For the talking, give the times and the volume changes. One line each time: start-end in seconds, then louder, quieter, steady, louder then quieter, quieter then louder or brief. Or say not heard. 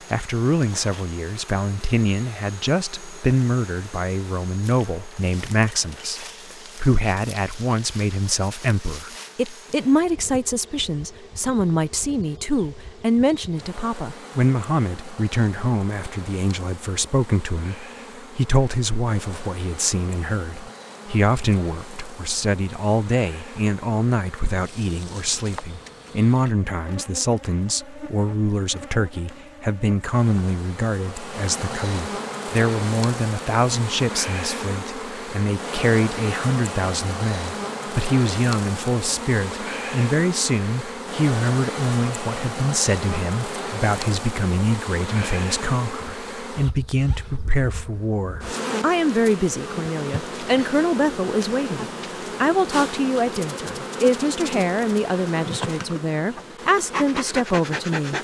0.1-58.2 steady.